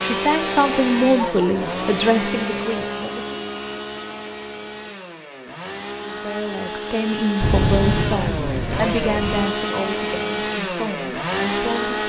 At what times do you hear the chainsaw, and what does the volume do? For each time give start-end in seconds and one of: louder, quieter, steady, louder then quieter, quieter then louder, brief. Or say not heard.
0.0-12.0 quieter then louder.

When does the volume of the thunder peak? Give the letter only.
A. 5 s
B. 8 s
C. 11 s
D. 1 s
B.